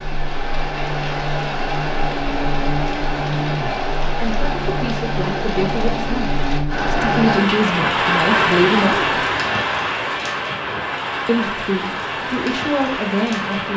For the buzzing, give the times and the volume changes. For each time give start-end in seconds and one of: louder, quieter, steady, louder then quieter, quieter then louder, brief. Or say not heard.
0.0-7.4 steady.